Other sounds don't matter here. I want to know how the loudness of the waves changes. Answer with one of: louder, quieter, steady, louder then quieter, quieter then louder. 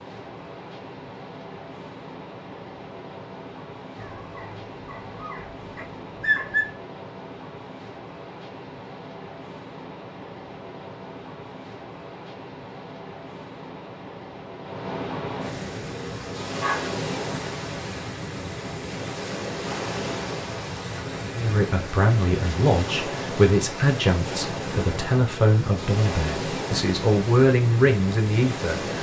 louder.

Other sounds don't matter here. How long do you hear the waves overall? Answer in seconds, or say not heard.
29 s.